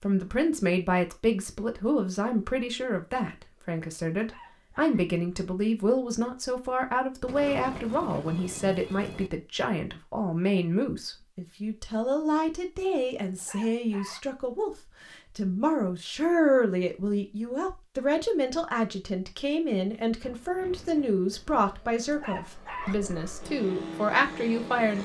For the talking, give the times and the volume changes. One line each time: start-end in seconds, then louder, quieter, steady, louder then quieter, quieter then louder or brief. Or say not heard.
0.0-24.9 steady.